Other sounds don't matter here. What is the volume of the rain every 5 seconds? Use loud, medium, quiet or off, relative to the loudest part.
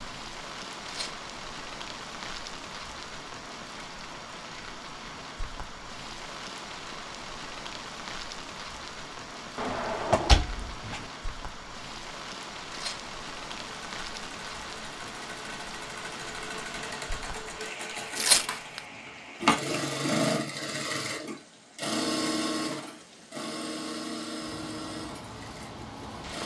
loud, loud, loud, loud, medium, loud.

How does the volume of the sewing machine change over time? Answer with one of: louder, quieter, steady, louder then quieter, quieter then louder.
louder then quieter.